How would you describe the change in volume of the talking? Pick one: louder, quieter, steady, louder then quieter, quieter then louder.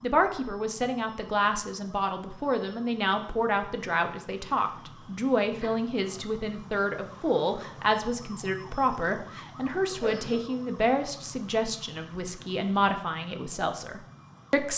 steady.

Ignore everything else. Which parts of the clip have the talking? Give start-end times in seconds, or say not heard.
0.0-14.7.